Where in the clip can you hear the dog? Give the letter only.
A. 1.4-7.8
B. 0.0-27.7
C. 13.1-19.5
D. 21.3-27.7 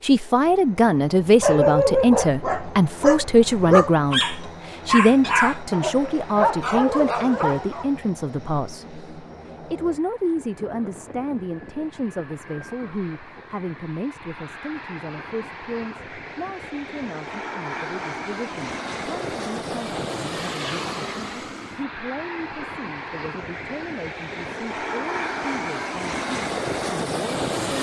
A.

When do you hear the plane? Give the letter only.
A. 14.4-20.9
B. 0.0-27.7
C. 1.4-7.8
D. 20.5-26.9
B.